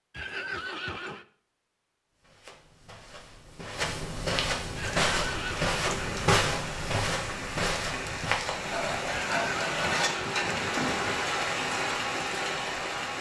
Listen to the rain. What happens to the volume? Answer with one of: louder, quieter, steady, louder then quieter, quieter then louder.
louder.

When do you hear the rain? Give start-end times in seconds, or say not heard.
4.8-13.1.